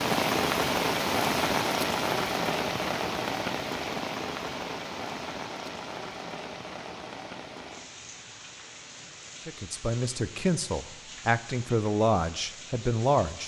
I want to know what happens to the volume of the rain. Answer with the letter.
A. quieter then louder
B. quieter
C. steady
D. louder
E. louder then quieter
B.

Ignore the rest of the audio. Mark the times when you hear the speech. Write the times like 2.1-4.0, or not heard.
9.4-13.4.